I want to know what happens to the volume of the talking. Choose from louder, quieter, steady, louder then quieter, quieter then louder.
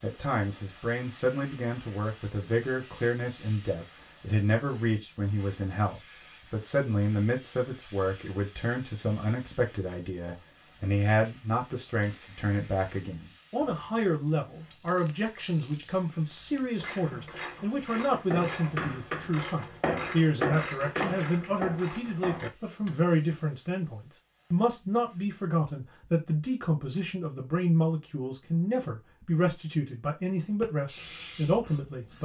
steady.